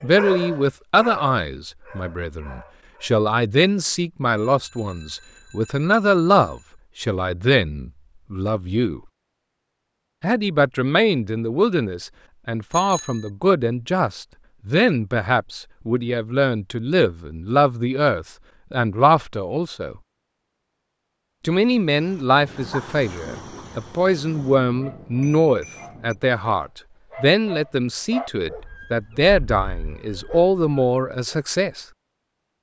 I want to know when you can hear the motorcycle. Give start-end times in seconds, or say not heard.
not heard.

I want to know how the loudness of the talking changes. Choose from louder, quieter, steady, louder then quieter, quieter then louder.
steady.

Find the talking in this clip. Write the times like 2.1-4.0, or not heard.
0.0-9.0, 10.2-19.9, 21.4-31.9.